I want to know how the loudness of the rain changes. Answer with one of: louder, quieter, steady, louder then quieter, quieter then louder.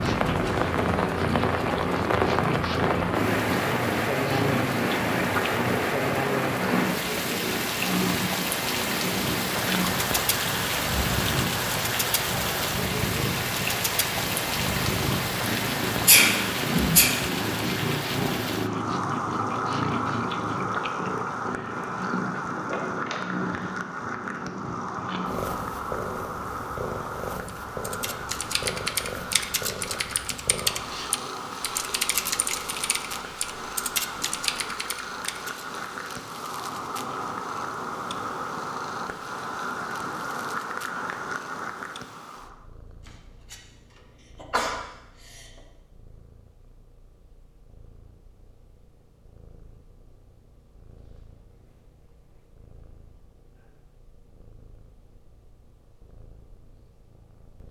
quieter.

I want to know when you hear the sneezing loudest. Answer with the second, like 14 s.
16 s.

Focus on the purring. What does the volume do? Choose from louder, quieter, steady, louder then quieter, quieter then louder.
quieter.